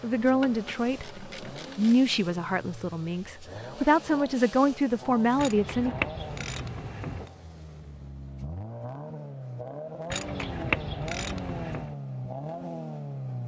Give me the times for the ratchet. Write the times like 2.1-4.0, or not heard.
0.4-2.0, 5.3-7.3, 10.1-11.9.